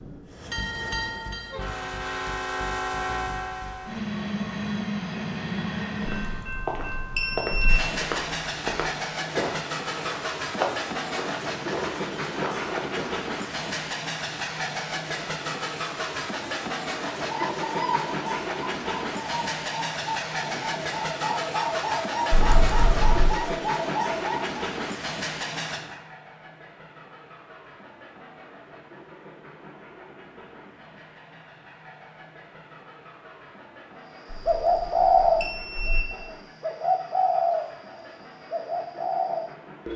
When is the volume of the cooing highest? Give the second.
35 s.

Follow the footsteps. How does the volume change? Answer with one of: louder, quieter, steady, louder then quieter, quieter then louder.
steady.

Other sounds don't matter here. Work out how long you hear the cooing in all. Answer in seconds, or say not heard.
13 s.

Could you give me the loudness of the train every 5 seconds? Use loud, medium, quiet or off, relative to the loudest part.
loud, loud, loud, loud, loud, medium, quiet, quiet.